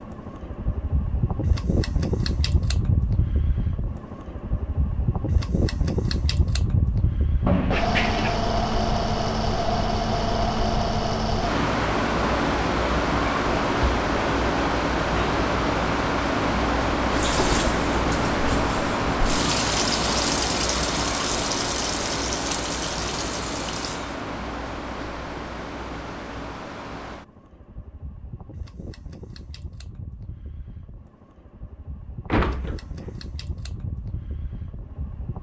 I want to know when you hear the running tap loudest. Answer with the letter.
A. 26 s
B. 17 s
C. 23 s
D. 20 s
D.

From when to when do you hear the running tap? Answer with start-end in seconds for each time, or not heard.
17.1-24.2.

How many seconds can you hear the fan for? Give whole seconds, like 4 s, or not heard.
35 s.